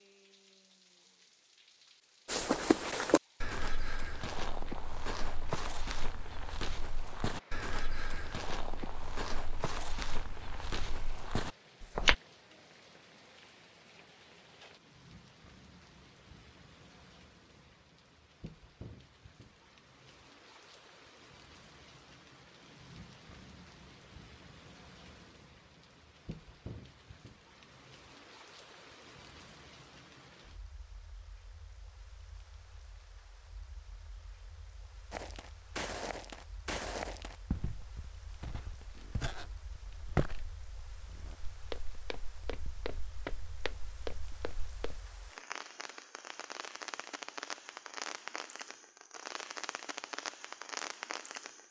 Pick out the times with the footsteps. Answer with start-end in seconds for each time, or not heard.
2.2-12.2, 35.1-45.0.